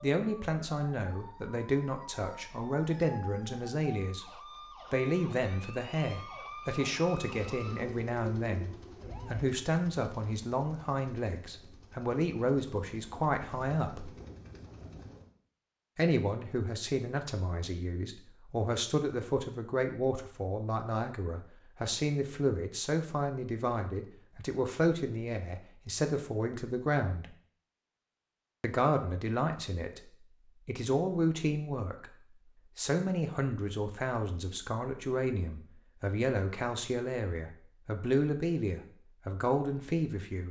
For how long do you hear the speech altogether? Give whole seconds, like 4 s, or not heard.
36 s.